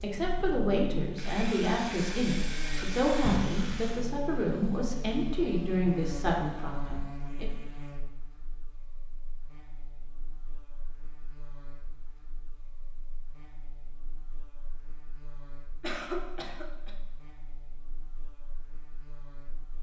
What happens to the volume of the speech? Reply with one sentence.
The volume of the speech stays about the same.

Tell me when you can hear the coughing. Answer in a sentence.
You can hear the coughing from 3.2 to 3.8 s and from 15.8 to 16.9 s.